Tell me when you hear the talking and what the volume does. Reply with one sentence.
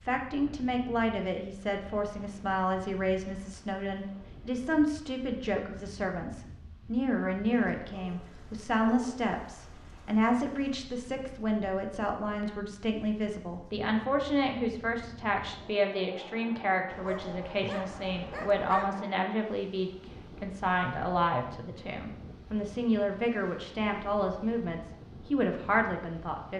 The talking can be heard from 0.1 to 26.5 s, at a steady volume.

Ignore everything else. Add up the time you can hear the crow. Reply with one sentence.
You can't hear the crow here.